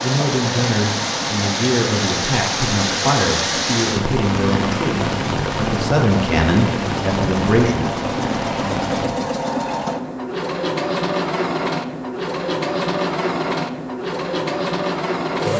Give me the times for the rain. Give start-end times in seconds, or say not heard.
0.0-9.1.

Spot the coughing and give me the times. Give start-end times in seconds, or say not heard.
not heard.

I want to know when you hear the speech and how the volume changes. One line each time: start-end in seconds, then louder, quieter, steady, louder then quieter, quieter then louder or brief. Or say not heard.
0.0-7.9 steady.